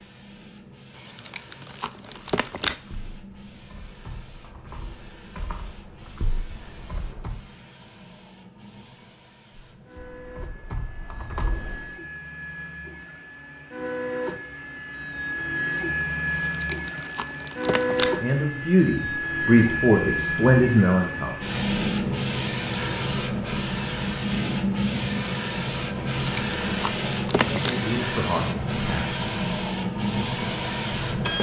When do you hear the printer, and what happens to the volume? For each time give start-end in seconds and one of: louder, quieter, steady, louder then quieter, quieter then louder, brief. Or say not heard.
0.0-31.3 louder.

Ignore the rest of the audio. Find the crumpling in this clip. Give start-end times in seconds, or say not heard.
0.9-2.8, 16.4-18.1, 25.9-27.8.